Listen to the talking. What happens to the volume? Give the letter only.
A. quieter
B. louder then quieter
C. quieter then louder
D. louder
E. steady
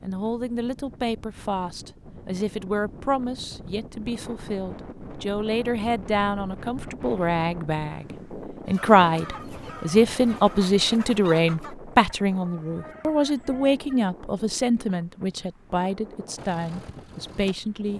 B.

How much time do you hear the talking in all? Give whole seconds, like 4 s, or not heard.
18 s.